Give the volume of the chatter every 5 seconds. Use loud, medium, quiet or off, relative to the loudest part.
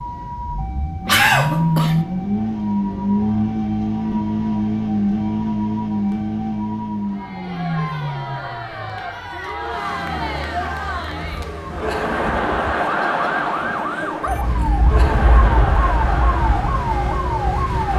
off, medium, loud, loud.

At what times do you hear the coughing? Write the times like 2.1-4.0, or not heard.
1.1-2.0.